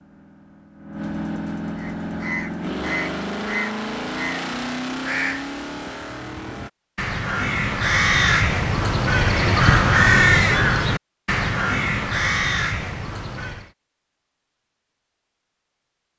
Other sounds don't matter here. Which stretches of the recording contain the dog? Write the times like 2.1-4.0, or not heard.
not heard.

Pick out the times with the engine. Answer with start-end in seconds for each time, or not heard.
0.0-6.7.